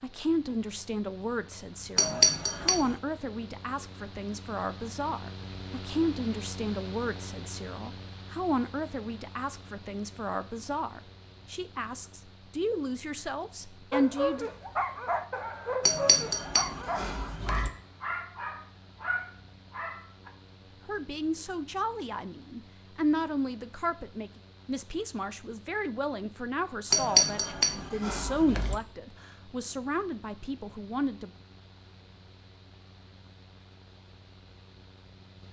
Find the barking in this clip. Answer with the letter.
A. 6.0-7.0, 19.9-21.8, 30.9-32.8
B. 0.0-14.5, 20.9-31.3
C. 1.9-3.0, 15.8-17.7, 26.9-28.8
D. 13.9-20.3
D.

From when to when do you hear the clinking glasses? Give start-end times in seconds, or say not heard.
1.9-3.0, 15.8-17.7, 26.9-28.8.